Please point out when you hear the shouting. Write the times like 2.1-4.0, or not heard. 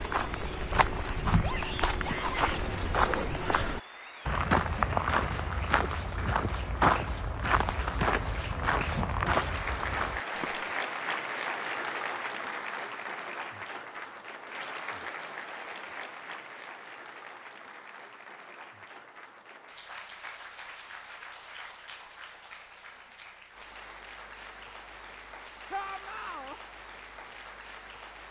1.4-2.5, 25.7-26.6.